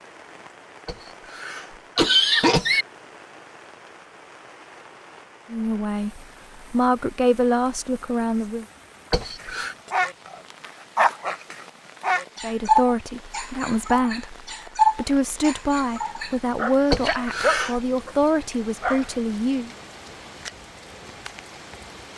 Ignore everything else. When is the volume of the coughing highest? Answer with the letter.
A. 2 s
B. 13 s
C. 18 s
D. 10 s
A.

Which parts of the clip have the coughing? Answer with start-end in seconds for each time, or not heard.
0.8-2.9, 9.1-9.8, 16.9-17.8.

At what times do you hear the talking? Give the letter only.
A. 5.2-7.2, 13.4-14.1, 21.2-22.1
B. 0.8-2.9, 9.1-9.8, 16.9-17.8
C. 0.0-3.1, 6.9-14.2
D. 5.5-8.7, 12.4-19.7
D.